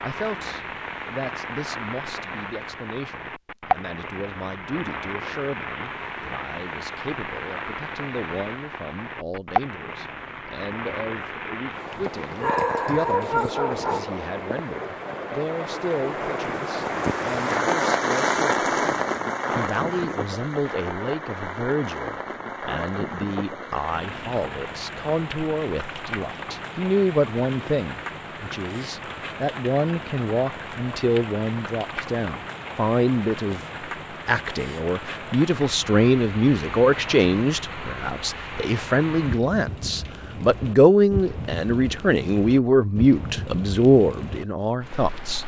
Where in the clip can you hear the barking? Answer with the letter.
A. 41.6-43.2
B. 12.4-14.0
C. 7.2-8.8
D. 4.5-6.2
B.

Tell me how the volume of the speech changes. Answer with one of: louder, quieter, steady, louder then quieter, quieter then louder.
louder.